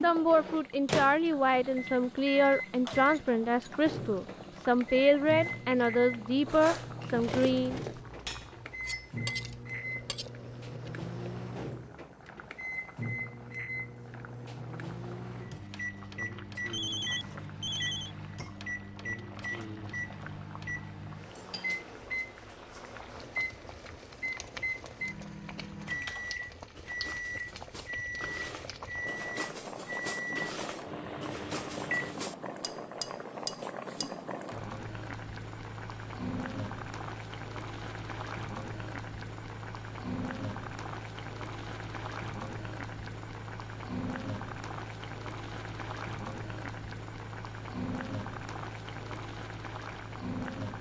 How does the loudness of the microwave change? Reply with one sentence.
The volume of the microwave stays about the same.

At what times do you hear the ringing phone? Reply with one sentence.
You can hear the ringing phone from 16.7 to 18.1 s.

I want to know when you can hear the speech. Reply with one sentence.
You can hear the speech from 0.0 to 7.8 s.